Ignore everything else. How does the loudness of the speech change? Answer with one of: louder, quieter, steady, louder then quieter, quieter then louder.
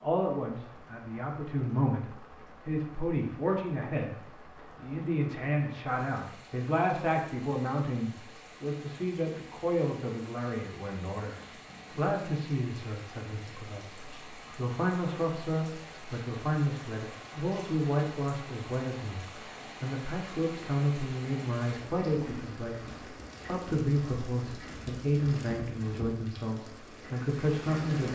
steady.